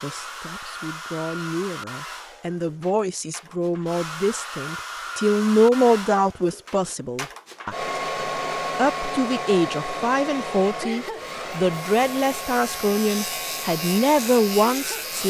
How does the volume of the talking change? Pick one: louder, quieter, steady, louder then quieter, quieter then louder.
louder.